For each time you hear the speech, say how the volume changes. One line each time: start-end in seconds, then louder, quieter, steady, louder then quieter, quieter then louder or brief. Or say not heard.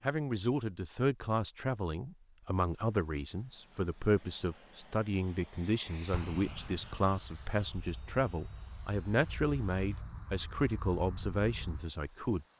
0.0-12.4 steady.